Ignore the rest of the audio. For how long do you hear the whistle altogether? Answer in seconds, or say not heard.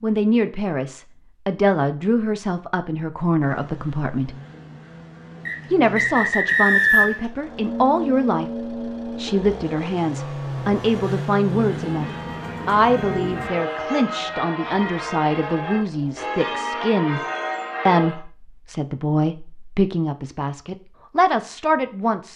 2 s.